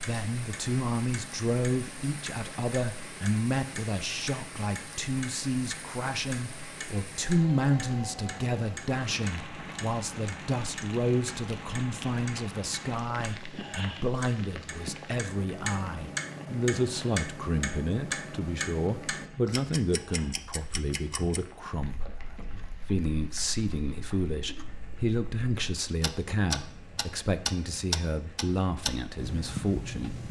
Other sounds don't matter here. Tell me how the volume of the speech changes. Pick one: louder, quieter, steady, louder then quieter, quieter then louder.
steady.